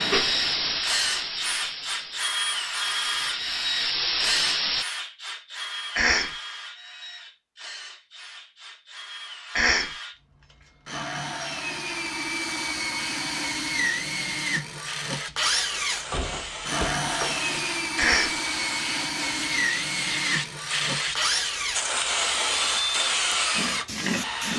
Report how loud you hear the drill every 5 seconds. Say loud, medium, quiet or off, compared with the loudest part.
loud, medium, loud, loud, loud.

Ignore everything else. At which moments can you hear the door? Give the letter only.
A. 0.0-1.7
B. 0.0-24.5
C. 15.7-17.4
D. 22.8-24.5
C.